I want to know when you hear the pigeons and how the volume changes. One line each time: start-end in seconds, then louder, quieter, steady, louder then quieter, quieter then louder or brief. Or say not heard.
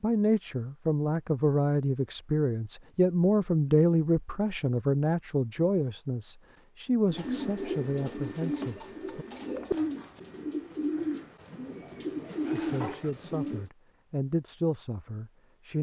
7.0-13.7 steady.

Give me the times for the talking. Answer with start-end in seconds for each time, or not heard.
0.0-9.2, 12.5-15.7.